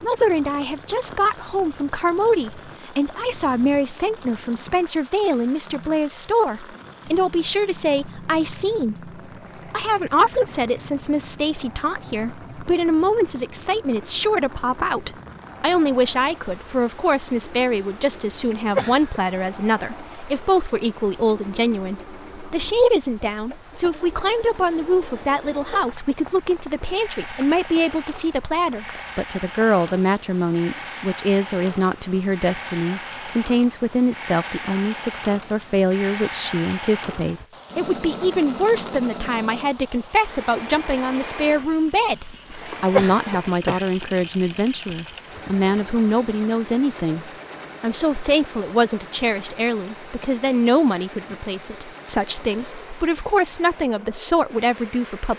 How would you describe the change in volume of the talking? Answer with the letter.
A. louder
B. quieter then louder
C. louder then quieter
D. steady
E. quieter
D.